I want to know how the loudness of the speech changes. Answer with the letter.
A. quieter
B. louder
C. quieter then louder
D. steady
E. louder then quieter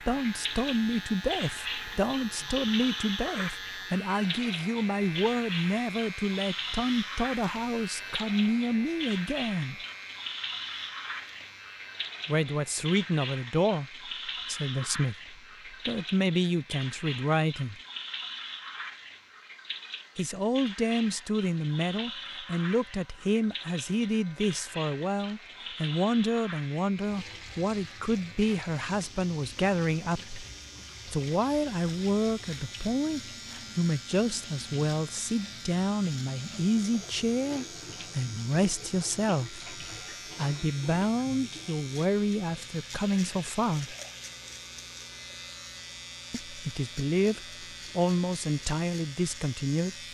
D.